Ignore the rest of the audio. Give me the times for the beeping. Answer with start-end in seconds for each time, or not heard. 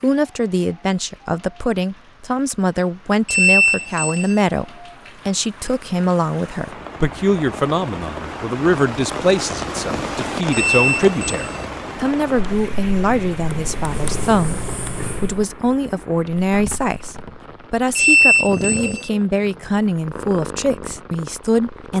3.2-4.4, 10.5-11.7, 17.9-19.1.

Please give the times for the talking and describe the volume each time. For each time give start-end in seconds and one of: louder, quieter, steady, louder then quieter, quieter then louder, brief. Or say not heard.
0.0-21.9 steady.